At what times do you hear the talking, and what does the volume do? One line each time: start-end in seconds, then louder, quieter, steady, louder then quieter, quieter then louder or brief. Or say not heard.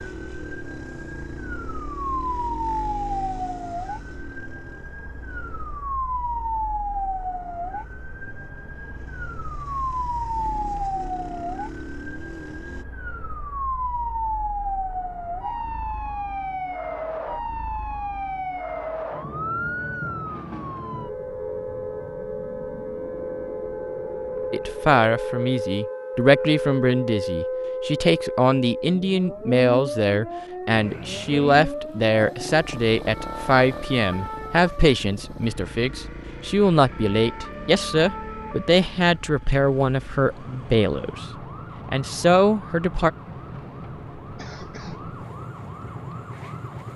24.5-41.2 steady
41.9-43.1 brief.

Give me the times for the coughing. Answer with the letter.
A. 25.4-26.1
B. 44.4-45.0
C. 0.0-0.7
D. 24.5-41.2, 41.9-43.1
B.